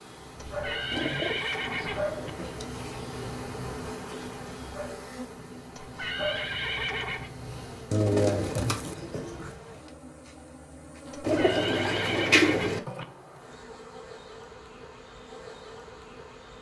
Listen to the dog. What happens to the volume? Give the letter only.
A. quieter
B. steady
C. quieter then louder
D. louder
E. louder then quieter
C.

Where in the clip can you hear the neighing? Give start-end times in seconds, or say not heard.
0.4-2.3, 5.8-7.3, 11.1-13.1.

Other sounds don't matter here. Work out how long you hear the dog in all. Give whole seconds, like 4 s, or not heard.
8 s.